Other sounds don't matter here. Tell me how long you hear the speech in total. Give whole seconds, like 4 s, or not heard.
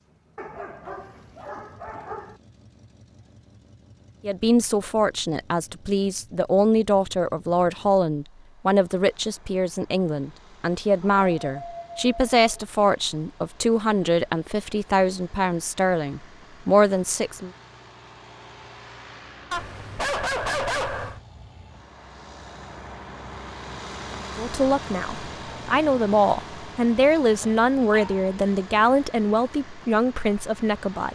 20 s.